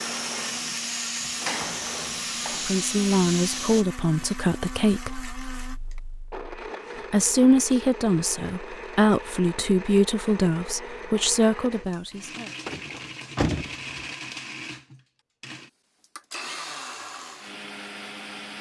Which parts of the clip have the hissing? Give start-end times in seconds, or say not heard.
0.0-3.9.